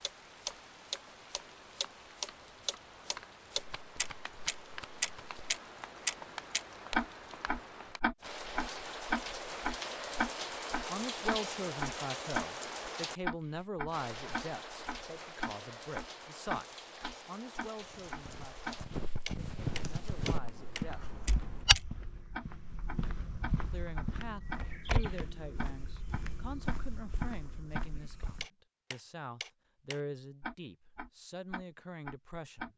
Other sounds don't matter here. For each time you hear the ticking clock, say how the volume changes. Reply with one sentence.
You can hear the ticking clock from 0.0 to 32.7 s, getting quieter.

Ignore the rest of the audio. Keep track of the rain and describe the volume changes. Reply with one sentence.
The volume of the rain goes up, then down.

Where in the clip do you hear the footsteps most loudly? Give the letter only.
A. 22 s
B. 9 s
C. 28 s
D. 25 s
A.